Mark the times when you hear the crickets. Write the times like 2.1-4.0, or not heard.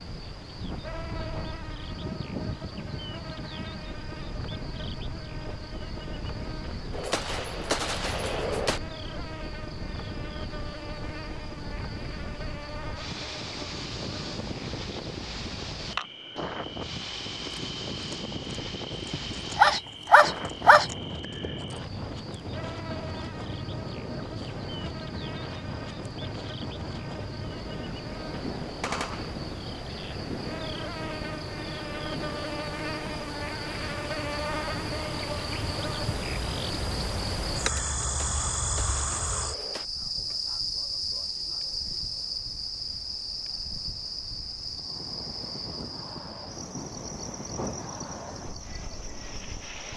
0.0-49.9.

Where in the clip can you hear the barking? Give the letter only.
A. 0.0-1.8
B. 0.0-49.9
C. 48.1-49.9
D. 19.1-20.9
D.